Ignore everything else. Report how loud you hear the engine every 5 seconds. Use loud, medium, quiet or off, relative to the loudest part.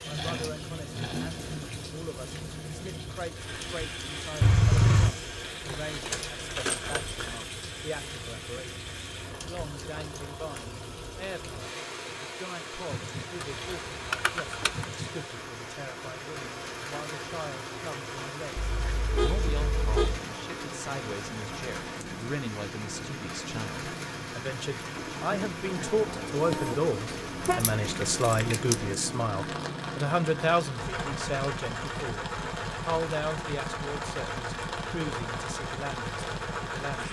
loud, medium, medium, medium, medium, loud, loud, loud.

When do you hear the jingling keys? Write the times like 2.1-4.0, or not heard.
5.7-7.4, 13.4-14.8, 27.4-28.9.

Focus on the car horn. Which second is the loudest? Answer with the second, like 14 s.
5 s.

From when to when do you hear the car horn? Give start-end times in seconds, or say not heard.
4.4-5.2, 18.6-20.2, 26.4-27.6.